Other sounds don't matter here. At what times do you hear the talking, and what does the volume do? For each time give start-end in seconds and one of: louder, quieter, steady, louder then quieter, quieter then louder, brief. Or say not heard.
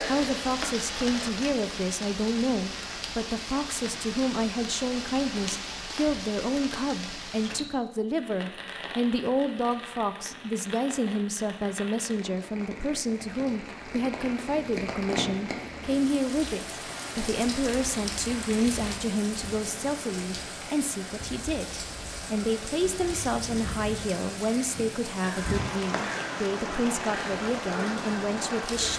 0.1-28.9 steady.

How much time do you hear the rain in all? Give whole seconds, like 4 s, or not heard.
29 s.